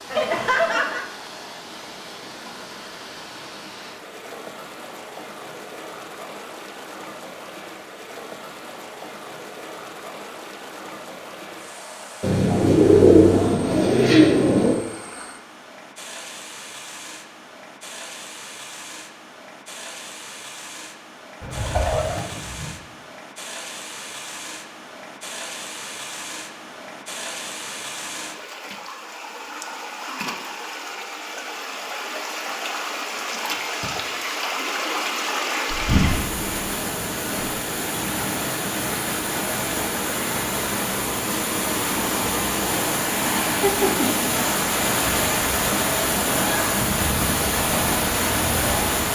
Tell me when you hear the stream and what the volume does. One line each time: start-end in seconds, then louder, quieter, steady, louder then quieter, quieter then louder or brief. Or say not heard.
0.0-49.1 louder.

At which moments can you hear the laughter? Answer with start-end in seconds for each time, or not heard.
0.1-1.1, 43.6-44.3.